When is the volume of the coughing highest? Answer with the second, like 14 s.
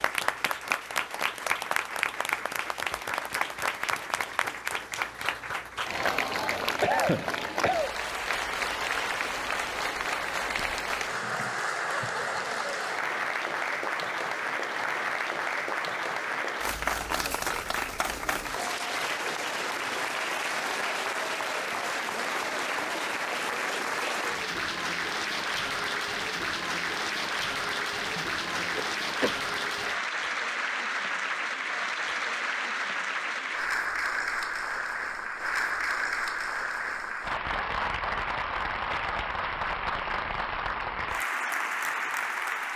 7 s.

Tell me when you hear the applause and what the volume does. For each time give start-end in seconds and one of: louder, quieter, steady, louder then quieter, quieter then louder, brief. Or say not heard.
0.0-42.7 steady.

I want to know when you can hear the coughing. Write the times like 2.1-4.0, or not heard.
6.8-8.0, 28.1-29.4.